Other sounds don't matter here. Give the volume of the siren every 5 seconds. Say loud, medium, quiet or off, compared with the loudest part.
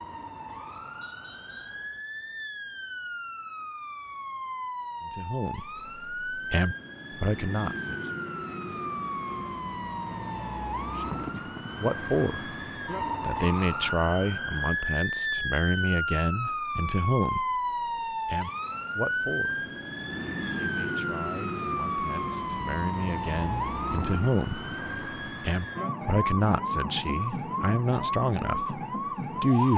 medium, medium, loud, loud, loud, loud.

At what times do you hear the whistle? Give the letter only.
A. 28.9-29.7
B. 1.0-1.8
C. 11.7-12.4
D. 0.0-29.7
B.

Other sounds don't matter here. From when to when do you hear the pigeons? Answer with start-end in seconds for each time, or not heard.
not heard.